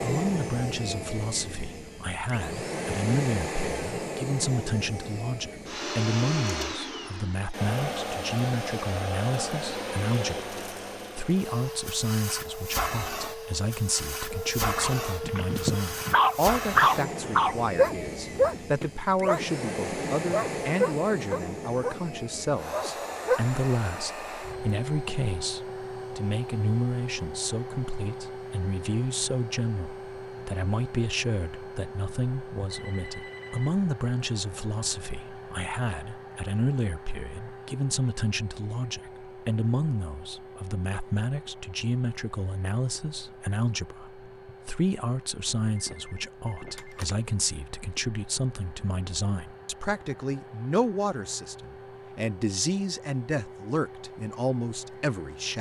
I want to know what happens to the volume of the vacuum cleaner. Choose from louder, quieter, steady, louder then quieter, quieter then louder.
quieter.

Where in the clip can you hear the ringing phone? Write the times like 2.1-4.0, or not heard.
14.3-15.8, 32.7-33.8, 45.8-47.1.